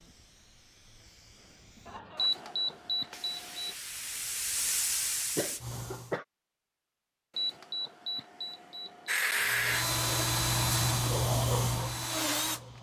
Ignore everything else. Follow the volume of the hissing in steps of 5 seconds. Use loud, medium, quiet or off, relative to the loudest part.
medium, medium, loud.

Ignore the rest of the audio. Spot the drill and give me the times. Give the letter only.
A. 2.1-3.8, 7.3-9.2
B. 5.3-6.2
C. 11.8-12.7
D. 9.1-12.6
D.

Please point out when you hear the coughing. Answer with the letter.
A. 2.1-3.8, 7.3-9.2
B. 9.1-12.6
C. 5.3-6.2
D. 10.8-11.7
C.